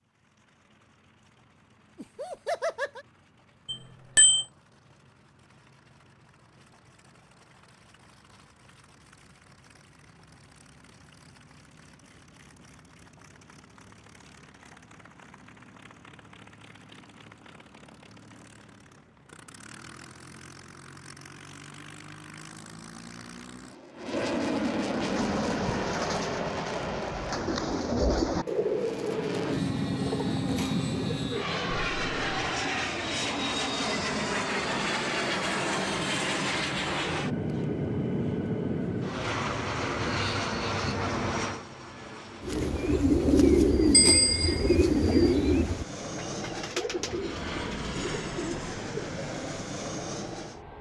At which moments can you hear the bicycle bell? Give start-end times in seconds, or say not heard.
3.6-4.5, 43.9-44.8.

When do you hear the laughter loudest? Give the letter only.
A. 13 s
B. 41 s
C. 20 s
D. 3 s
D.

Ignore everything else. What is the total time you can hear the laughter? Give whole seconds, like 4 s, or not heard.
2 s.